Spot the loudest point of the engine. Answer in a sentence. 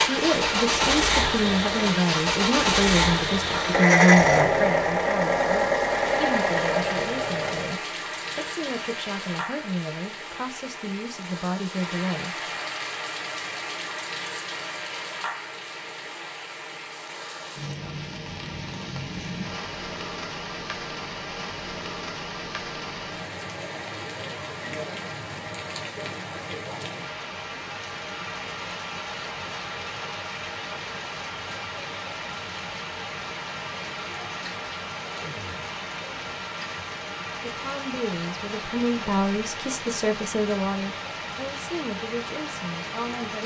The volume of the engine peaks at 4 seconds.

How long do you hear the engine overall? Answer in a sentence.
The engine can be heard for 8 seconds in total.